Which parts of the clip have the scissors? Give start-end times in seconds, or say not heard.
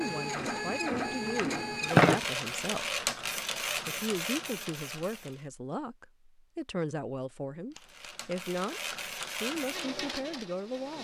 1.2-2.2, 7.8-8.3.